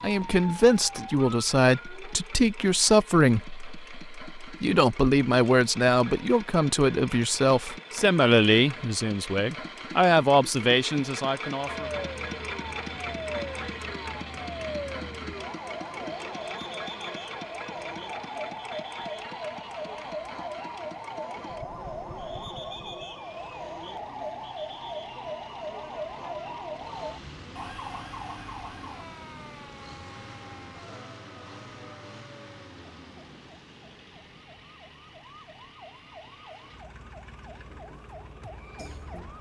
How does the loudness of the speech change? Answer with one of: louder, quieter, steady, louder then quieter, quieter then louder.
steady.